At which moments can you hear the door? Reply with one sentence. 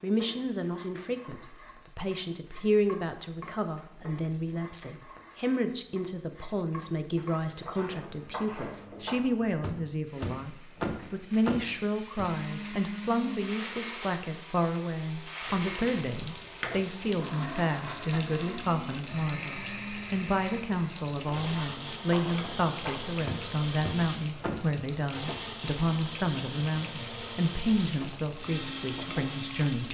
The door can be heard from 9.6 to 12.3 s and from 23.2 to 24.7 s.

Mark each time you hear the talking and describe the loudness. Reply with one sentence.
You can hear the talking from 0.0 to 29.8 s, at a steady volume.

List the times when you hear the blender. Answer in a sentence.
You can hear the blender from 12.2 to 29.8 s.